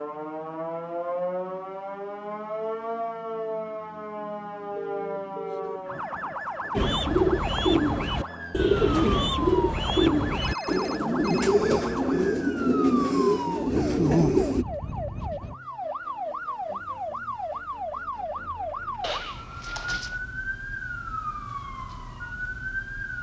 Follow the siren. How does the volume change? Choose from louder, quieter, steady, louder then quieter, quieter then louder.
steady.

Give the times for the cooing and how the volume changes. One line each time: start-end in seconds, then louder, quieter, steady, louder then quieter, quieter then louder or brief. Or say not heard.
6.8-14.7 steady.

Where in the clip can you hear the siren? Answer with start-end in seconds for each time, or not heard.
0.0-23.1.